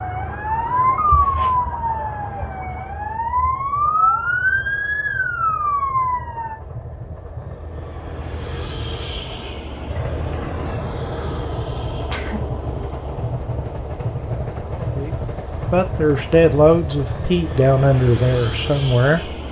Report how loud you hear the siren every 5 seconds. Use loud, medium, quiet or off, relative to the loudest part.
loud, loud, off, off.